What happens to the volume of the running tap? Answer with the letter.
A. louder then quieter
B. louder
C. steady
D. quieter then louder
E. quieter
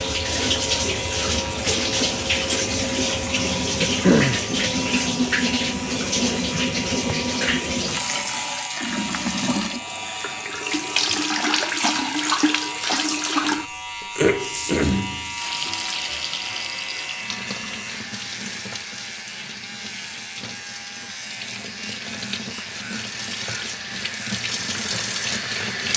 E.